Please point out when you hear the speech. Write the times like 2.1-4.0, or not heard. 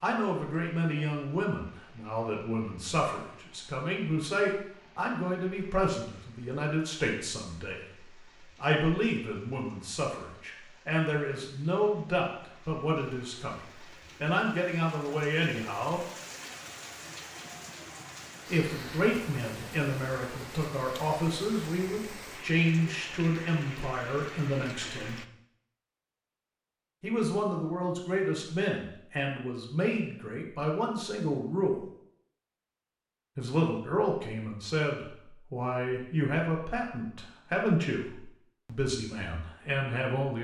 0.0-7.8, 8.6-13.6, 14.2-16.0, 18.4-25.2, 27.0-31.9, 33.4-40.3.